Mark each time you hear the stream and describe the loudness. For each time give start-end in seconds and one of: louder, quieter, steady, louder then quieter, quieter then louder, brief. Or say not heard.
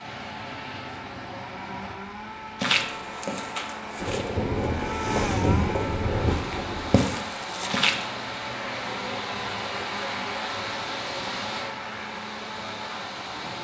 0.0-13.5 louder.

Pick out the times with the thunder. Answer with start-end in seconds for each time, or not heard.
4.0-7.0.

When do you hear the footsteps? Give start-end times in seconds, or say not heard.
2.6-8.1.